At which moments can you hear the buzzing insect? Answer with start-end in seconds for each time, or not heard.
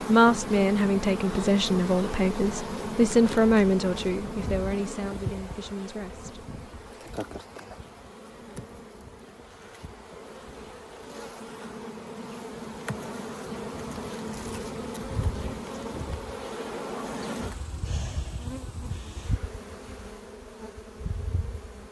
0.0-21.8.